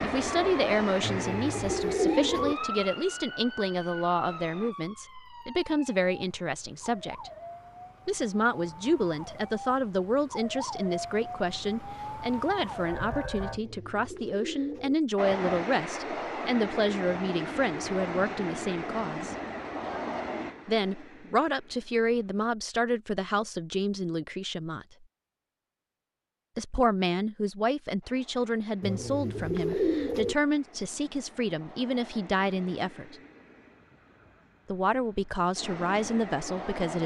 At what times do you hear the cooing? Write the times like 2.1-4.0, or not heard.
1.0-2.5, 13.4-14.9, 28.8-30.4.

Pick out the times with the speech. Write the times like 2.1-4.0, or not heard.
0.0-7.3, 8.1-19.4, 20.6-24.9, 26.6-33.1, 34.7-37.0.